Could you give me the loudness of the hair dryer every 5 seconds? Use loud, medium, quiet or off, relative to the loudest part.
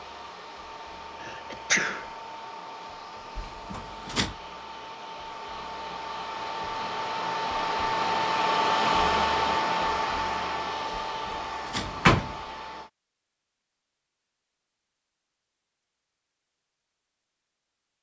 quiet, loud, medium, off.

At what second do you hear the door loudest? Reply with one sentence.
The volume of the door peaks at 12 seconds.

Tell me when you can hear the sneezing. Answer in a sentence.
You can hear the sneezing from 1.2 to 2.1 s.